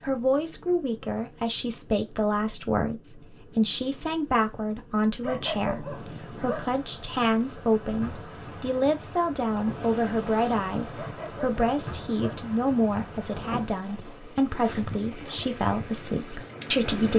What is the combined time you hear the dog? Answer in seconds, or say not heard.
3 s.